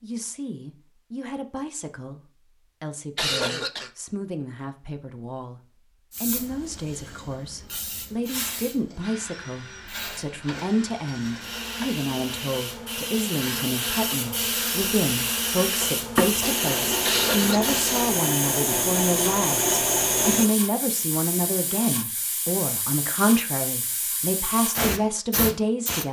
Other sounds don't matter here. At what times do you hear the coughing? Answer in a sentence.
The coughing can be heard from 3.1 to 3.9 s and from 17.1 to 17.8 s.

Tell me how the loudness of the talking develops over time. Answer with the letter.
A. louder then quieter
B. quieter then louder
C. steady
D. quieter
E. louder
E.